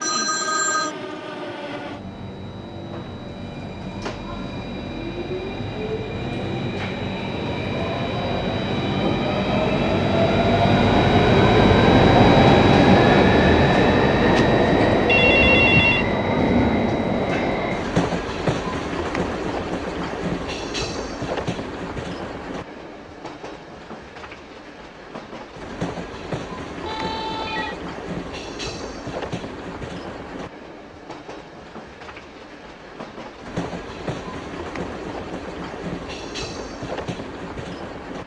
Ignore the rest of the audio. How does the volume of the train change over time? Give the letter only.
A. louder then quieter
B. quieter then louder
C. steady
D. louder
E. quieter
A.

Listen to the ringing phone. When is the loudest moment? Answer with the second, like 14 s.
16 s.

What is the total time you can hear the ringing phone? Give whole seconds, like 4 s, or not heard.
4 s.